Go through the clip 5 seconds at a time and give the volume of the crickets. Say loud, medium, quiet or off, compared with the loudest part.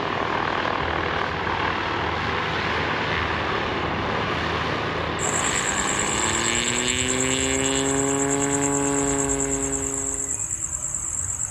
off, loud, loud.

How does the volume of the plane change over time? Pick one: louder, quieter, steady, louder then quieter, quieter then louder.
steady.